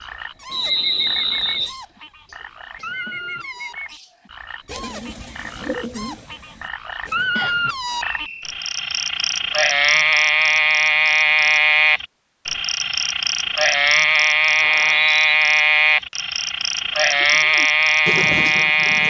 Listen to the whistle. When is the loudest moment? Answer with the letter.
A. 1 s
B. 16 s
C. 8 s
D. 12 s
A.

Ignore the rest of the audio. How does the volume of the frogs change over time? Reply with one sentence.
The volume of the frogs goes up.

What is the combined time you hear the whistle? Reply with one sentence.
You can hear the whistle for 3 seconds altogether.